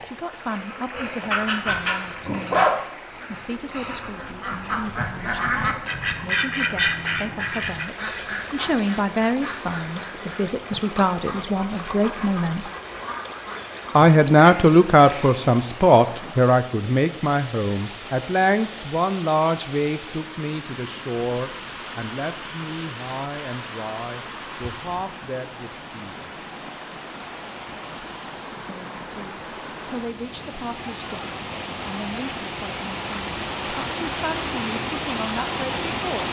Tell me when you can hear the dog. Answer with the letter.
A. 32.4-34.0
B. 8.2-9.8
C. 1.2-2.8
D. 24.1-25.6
C.